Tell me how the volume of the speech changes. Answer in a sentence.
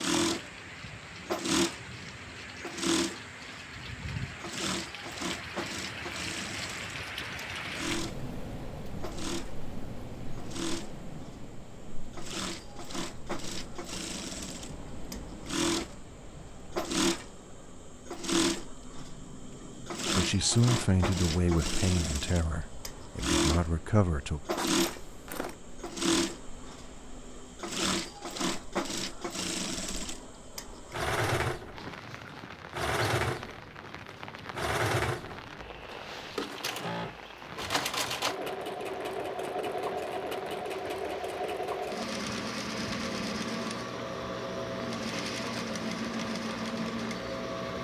The volume of the speech goes down, then up.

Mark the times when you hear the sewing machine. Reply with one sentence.
The sewing machine can be heard from 0.0 to 31.8 s and from 32.7 to 47.7 s.